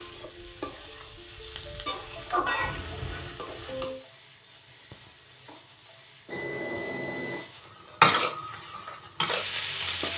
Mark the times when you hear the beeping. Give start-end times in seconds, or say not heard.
2.5-3.4, 6.2-7.5.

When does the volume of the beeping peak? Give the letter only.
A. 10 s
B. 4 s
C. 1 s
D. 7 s
D.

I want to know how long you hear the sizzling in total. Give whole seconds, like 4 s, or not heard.
10 s.